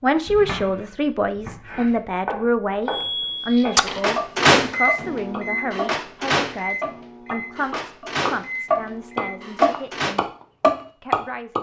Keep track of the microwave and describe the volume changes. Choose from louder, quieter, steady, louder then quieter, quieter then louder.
quieter.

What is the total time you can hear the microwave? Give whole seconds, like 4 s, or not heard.
7 s.